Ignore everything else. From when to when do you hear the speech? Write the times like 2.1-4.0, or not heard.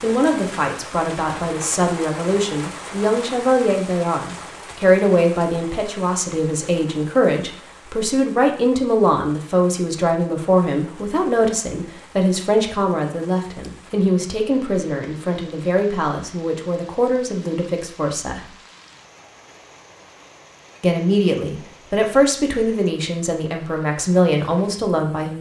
0.0-18.5, 20.8-25.3.